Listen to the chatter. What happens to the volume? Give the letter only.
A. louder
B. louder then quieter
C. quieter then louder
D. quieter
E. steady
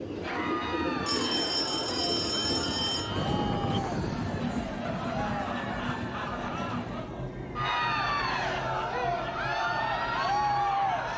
A.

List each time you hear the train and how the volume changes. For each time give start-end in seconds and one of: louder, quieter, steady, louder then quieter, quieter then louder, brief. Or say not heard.
0.0-11.1 quieter.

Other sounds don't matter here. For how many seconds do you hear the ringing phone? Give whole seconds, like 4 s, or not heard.
3 s.